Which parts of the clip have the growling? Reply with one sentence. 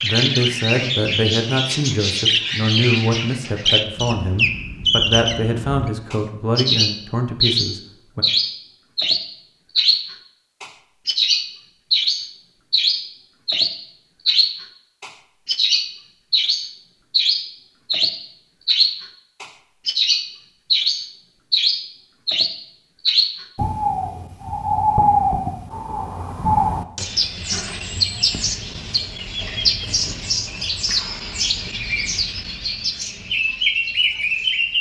The growling can't be heard in this clip.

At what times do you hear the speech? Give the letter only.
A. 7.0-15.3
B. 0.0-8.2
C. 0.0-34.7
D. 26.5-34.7
B.